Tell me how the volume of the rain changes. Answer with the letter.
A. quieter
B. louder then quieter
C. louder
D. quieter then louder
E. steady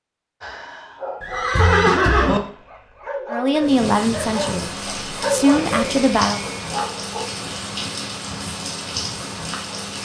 E.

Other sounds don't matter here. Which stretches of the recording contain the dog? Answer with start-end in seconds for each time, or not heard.
0.4-7.2.